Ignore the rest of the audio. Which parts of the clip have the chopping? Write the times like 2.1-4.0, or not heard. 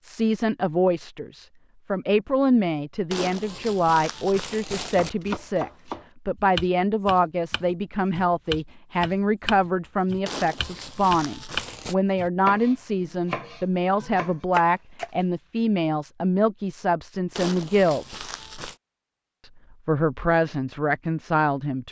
4.8-15.1.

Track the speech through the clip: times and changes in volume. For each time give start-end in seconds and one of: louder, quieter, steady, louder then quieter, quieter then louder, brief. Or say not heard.
0.0-18.2 steady
19.4-21.8 brief.